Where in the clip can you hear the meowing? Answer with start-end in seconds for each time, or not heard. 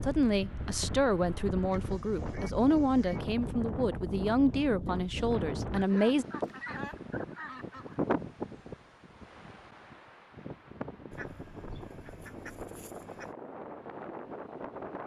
not heard.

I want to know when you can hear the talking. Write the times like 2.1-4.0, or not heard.
0.0-6.2.